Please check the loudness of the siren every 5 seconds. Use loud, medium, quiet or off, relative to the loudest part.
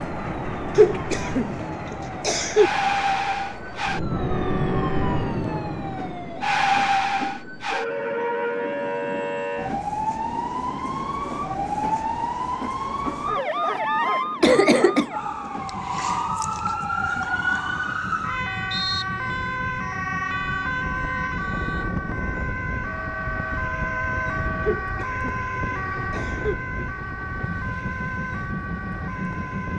loud, loud, loud, loud, loud, medium.